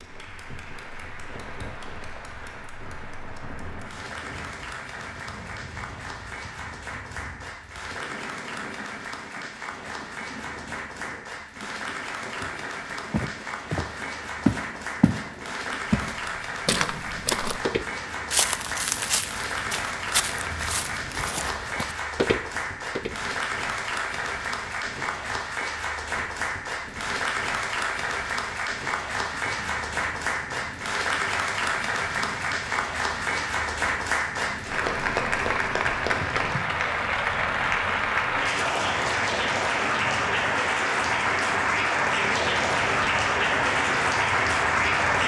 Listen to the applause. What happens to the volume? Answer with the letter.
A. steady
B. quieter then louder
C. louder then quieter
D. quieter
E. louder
E.